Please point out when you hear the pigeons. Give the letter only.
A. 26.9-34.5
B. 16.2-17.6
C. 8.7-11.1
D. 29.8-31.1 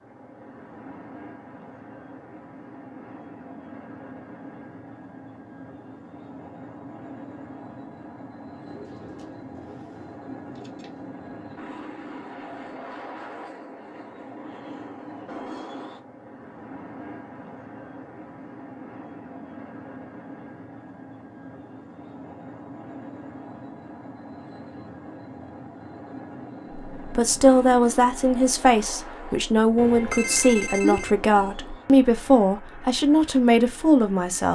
C.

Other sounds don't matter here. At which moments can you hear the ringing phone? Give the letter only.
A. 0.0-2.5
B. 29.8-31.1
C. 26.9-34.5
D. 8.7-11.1
B.